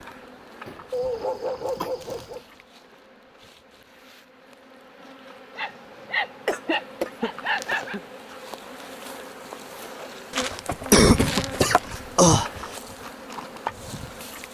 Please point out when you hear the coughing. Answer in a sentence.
The coughing can be heard from 0.7 to 1.9 s, from 6.5 to 8.0 s and from 10.3 to 12.7 s.